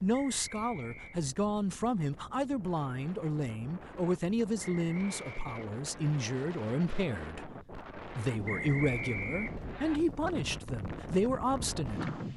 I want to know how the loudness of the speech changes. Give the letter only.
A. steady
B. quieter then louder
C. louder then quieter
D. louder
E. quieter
A.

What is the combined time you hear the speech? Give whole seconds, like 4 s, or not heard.
12 s.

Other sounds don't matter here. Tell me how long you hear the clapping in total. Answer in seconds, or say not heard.
not heard.